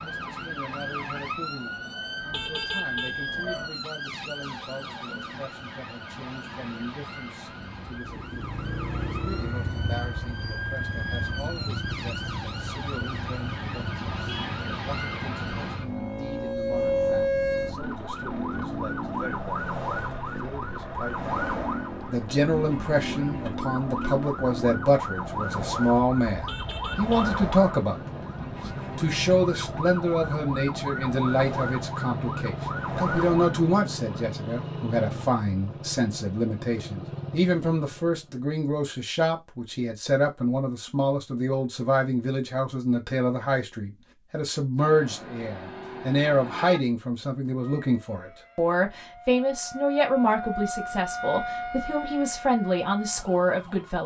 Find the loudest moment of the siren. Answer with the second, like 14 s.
17 s.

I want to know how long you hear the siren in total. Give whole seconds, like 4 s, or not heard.
41 s.